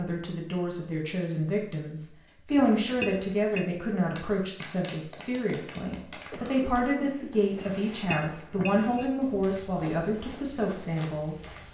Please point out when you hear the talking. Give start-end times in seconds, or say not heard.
0.0-11.4.